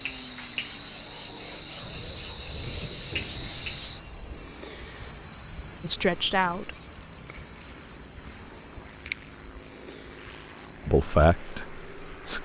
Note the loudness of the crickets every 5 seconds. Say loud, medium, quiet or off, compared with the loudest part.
loud, loud, medium.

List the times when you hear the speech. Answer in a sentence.
The speech can be heard from 5.8 to 6.8 s and from 10.8 to 12.3 s.